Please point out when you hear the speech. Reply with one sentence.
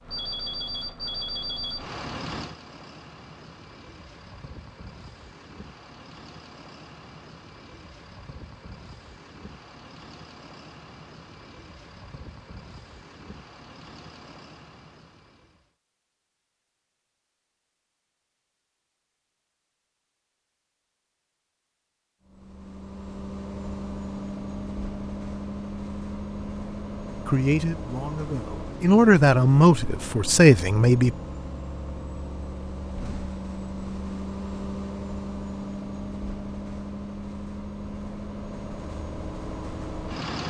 The speech can be heard from 27.2 to 31.1 s.